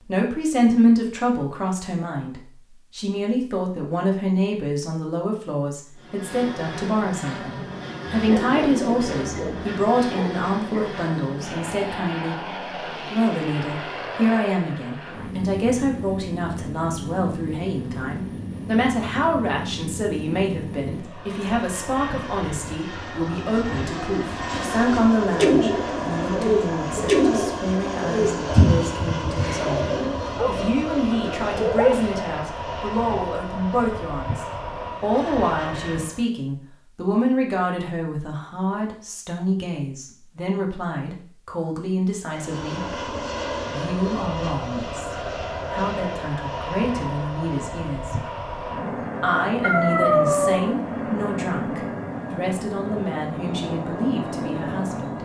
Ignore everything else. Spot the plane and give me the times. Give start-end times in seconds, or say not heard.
6.0-36.2, 42.2-55.1.